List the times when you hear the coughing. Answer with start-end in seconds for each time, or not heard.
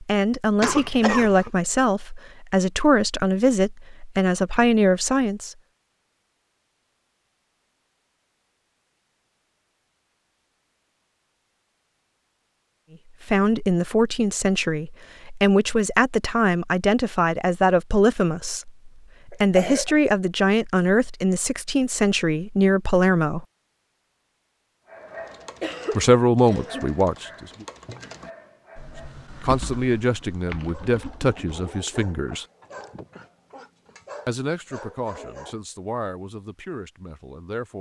0.6-1.5, 19.3-19.9, 25.6-27.0.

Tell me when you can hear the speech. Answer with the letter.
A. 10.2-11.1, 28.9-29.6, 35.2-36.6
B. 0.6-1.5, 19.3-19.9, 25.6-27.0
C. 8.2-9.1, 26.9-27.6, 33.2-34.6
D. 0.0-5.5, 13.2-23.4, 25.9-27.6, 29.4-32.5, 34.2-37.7
D.